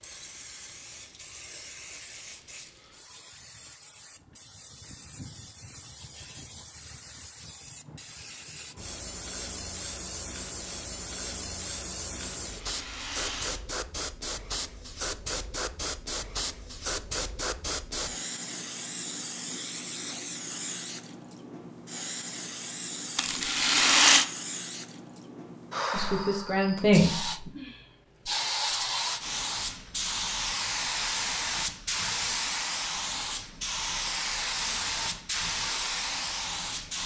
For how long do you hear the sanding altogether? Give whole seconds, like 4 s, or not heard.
not heard.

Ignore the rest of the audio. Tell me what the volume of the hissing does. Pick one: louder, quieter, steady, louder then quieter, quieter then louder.
louder.